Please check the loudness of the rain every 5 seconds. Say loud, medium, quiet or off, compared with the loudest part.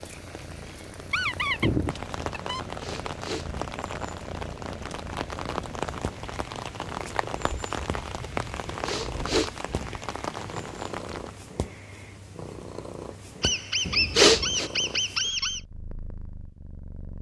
loud, loud, loud, off.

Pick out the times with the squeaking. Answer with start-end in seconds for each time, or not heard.
1.1-2.6, 13.4-15.6.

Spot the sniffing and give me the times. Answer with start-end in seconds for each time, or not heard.
2.6-3.6, 8.6-9.6, 13.8-14.7.